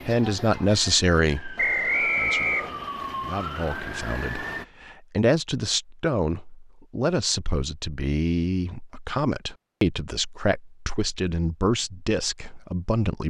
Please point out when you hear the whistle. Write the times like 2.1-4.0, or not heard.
1.6-2.7.